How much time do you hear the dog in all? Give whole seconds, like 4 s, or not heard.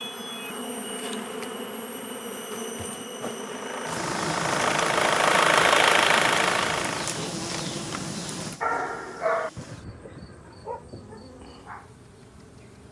4 s.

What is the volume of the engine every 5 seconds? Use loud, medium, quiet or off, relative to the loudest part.
medium, loud, off.